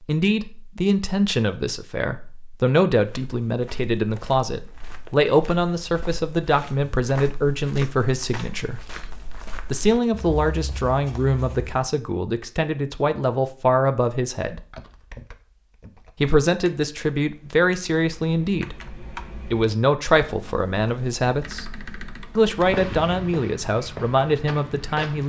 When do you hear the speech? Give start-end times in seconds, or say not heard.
0.1-8.8, 9.7-14.6, 16.2-18.8, 19.4-21.6, 22.4-25.2.